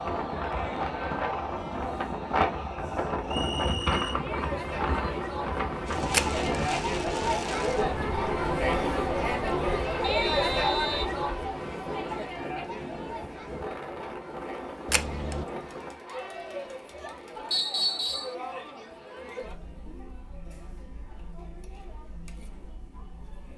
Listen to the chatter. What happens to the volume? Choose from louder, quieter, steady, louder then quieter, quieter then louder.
louder then quieter.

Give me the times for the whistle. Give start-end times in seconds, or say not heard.
3.2-4.2, 10.0-11.1, 17.5-18.4.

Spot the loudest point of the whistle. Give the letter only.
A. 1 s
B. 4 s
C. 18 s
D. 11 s
C.